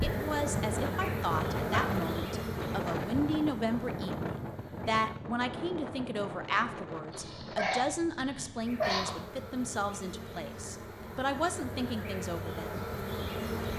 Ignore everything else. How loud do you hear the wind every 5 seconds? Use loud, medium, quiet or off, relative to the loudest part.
loud, medium, medium.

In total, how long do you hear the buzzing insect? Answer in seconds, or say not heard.
10 s.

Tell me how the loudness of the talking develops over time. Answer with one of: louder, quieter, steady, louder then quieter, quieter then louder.
steady.